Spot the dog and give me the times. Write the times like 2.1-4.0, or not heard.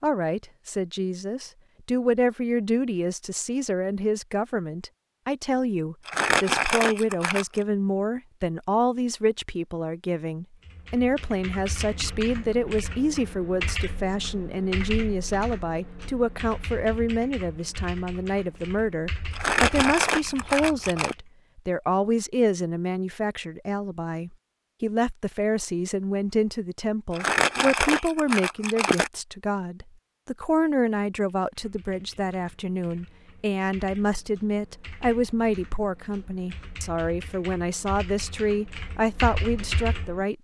not heard.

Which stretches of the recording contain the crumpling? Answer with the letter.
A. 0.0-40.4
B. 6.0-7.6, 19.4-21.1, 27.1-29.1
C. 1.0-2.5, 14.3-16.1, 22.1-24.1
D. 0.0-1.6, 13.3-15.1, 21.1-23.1
B.